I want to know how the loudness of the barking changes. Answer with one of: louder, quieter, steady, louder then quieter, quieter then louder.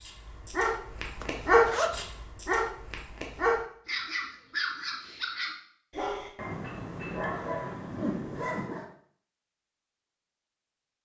quieter.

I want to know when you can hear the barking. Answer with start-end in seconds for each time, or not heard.
0.0-8.9.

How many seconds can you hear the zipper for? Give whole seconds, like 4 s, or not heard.
2 s.